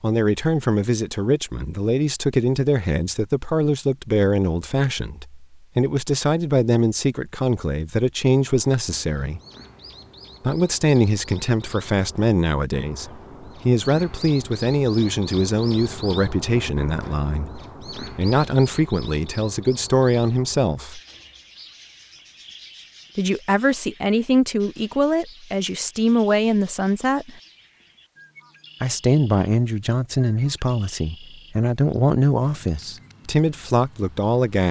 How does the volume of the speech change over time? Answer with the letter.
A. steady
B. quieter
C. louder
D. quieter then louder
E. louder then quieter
A.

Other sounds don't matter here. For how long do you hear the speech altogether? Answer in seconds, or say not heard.
30 s.